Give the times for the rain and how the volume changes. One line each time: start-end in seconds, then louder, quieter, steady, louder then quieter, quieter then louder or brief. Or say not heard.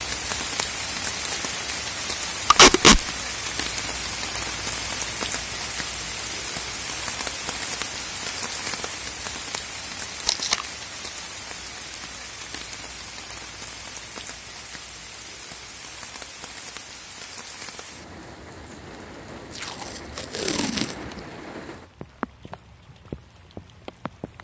0.0-24.3 quieter.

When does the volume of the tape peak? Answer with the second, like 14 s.
3 s.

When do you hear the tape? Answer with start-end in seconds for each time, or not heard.
2.5-3.0, 10.2-10.7, 19.6-20.9.